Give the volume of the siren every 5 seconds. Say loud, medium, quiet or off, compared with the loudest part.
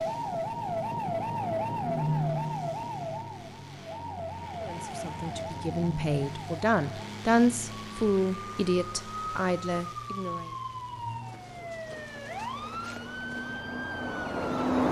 loud, medium, loud.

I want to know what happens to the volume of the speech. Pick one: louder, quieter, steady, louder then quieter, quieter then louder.
louder then quieter.